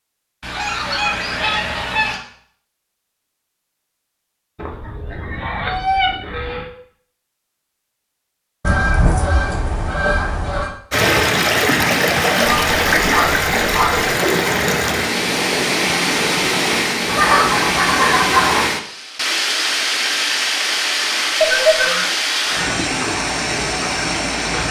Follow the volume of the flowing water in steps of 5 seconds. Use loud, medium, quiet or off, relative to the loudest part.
off, off, loud, loud, loud.